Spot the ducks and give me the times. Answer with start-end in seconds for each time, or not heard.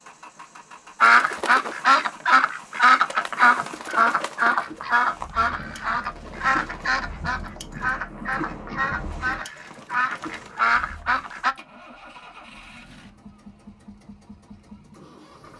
1.0-11.6.